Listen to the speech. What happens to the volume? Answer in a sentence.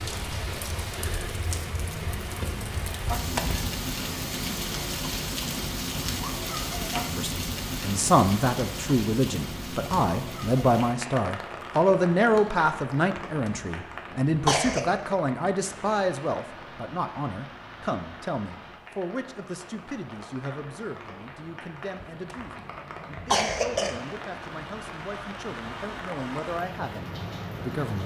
The volume of the speech goes down.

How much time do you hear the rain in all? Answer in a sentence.
You can hear the rain for 28 seconds altogether.